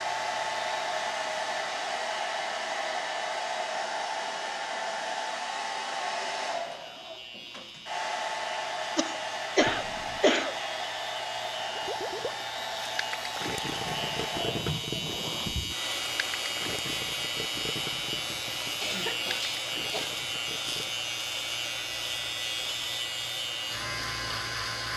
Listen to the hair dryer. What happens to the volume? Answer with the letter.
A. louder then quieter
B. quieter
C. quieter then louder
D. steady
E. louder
B.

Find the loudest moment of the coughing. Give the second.
10 s.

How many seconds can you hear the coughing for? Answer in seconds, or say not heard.
3 s.